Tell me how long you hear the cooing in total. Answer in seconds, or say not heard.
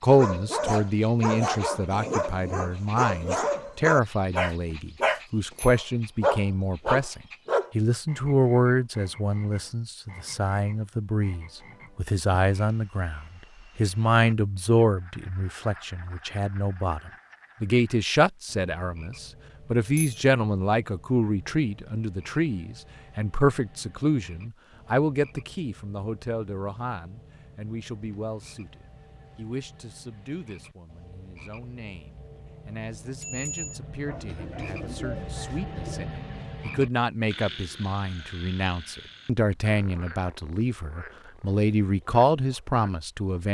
2 s.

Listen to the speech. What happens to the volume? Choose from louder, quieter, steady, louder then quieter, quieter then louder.
quieter then louder.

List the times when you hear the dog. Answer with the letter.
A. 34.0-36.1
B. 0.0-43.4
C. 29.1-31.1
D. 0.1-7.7
D.